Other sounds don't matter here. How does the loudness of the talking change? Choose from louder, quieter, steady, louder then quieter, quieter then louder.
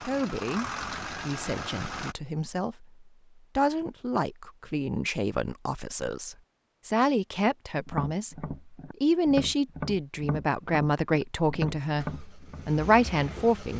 louder.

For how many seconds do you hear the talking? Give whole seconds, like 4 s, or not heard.
14 s.